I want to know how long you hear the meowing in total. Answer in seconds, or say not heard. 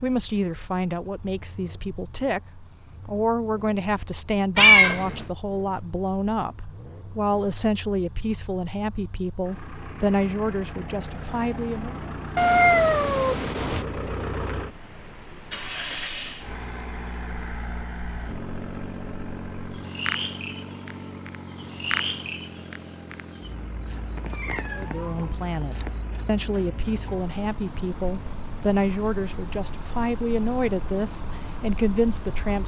4 s.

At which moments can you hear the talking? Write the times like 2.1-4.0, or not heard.
0.0-12.0, 24.7-32.6.